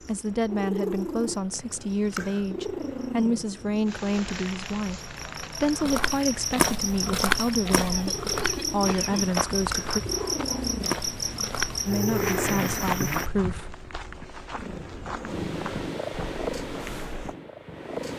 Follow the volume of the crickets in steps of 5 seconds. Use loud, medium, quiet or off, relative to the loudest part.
quiet, loud, loud, off.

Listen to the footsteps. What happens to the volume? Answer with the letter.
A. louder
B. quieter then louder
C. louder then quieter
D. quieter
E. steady
D.